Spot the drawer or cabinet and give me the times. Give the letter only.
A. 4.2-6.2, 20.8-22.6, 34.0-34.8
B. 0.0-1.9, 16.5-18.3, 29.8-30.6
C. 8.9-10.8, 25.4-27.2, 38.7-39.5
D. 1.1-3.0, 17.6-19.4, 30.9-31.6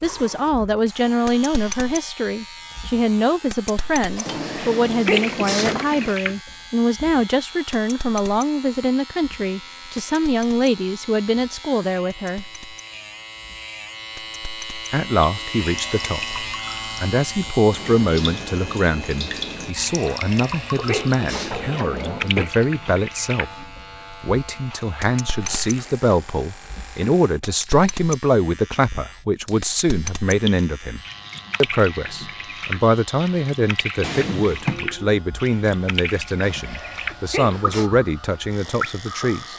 A.